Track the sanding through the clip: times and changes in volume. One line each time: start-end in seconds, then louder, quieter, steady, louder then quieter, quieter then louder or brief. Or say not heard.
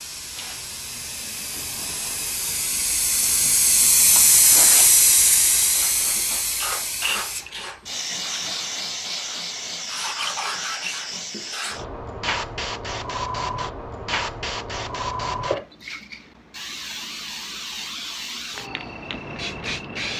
5.8-11.8 quieter then louder.